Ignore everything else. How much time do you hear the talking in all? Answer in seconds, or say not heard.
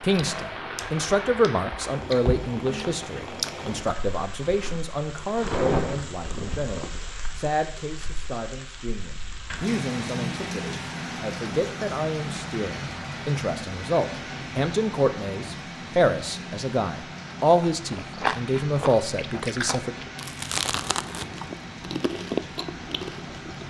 20 s.